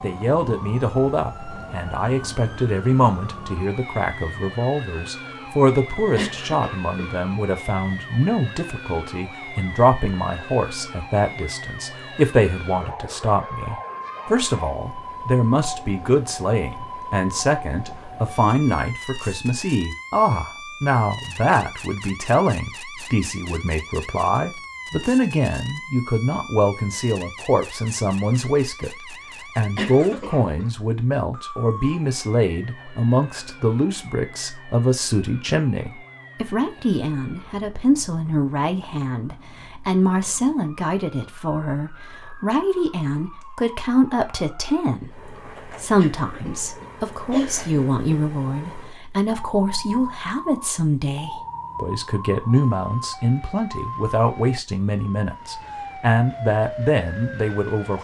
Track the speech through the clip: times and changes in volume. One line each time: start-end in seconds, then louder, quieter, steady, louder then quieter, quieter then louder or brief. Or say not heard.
0.0-57.9 steady.